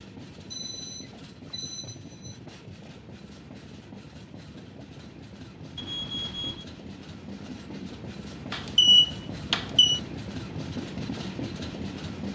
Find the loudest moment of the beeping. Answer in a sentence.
The loudest moment of the beeping is at 9 seconds.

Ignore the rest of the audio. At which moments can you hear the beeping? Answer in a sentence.
The beeping can be heard from 0.5 to 2.4 s, from 5.8 to 6.7 s and from 8.5 to 10.0 s.